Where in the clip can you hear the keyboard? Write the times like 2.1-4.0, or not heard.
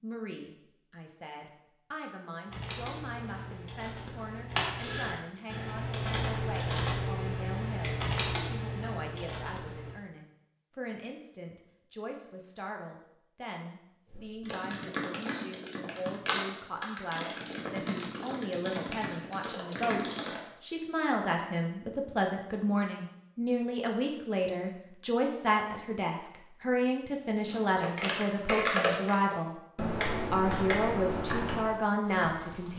2.5-10.0, 14.1-20.4, 27.4-32.7.